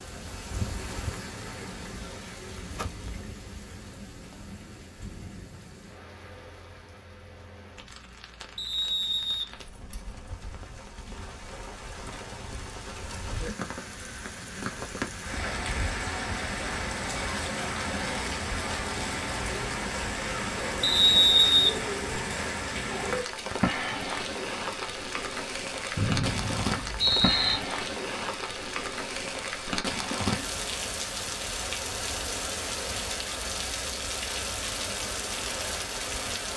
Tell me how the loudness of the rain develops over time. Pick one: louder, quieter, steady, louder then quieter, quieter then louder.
louder.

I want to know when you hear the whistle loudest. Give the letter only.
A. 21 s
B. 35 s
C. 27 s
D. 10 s
A.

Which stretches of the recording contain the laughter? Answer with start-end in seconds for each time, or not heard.
not heard.